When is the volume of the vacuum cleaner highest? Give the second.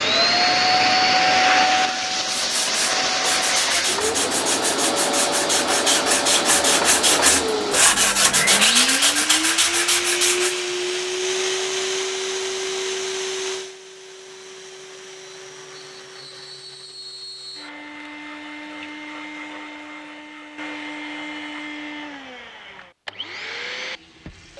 1 s.